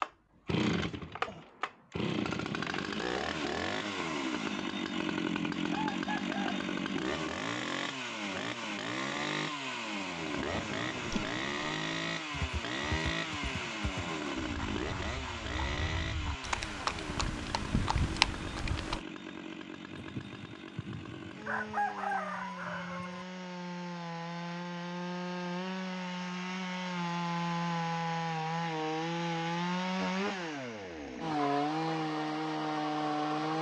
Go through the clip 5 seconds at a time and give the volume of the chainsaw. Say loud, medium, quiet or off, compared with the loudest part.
loud, loud, loud, medium, medium, loud, loud.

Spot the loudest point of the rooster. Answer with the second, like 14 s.
22 s.